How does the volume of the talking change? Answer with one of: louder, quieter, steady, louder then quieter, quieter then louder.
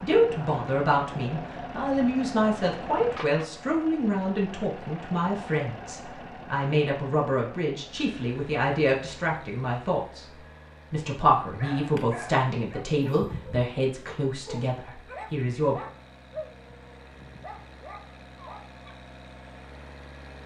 steady.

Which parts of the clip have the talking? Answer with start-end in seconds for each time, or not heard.
0.0-10.2, 10.9-15.8.